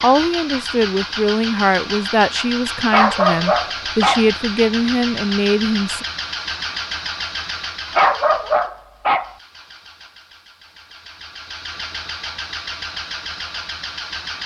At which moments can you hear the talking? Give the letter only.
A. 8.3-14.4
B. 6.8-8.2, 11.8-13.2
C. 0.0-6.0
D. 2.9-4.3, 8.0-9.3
C.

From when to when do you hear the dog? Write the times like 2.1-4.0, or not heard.
2.9-4.3, 8.0-9.3.